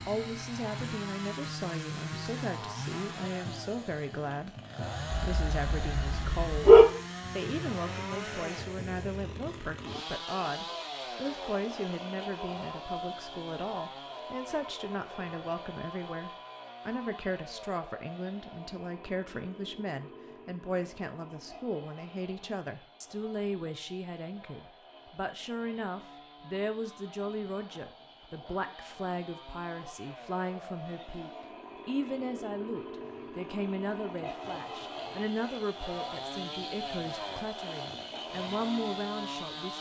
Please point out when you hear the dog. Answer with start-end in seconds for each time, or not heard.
5.1-6.8.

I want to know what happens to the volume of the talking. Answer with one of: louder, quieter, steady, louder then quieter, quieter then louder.
steady.